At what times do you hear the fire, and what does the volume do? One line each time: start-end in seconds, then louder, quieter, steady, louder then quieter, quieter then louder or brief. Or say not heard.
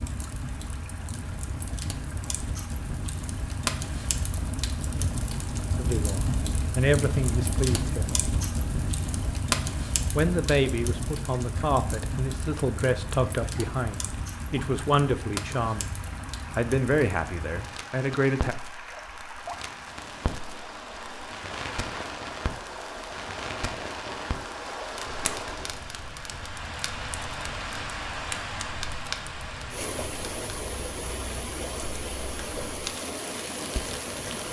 0.0-34.4 quieter.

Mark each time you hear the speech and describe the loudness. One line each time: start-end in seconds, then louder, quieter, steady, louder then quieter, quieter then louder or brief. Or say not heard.
5.8-8.2 brief
10.2-18.6 steady.